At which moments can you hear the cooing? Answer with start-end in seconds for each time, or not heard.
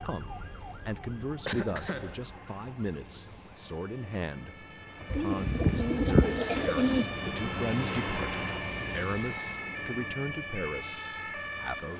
5.1-7.0.